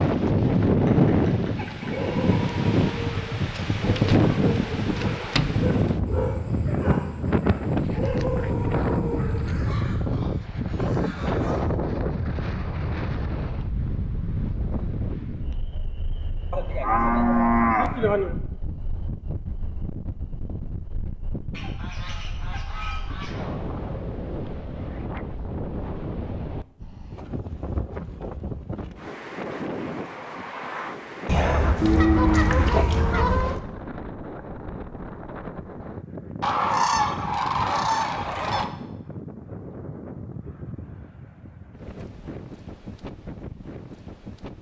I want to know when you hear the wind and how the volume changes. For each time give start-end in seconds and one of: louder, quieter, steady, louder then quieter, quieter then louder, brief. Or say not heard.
0.0-44.5 quieter.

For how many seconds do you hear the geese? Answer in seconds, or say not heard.
11 s.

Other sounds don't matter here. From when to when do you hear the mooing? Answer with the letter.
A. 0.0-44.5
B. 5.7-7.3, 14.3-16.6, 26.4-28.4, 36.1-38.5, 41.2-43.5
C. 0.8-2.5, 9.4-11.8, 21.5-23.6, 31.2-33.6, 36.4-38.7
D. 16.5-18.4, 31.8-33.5
D.